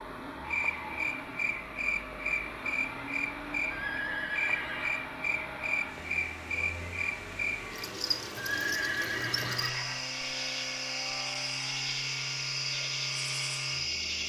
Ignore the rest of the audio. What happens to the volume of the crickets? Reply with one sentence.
The loudness of the crickets stays about the same.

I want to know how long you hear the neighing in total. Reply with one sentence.
You can hear the neighing for 3 seconds altogether.